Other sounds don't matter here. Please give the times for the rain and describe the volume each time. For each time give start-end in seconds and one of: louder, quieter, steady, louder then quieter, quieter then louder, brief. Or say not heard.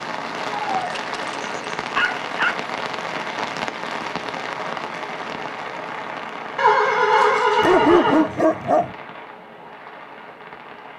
0.0-10.9 quieter.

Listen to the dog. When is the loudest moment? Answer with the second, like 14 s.
8 s.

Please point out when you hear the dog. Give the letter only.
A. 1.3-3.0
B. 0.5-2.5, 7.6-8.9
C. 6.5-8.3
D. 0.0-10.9
B.